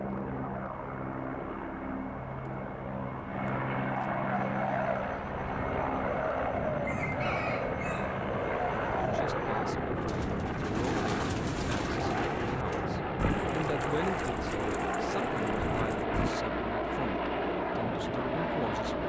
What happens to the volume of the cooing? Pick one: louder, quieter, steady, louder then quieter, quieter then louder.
quieter.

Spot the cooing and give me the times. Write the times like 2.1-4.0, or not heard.
4.3-16.3.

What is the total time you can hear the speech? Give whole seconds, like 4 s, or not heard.
10 s.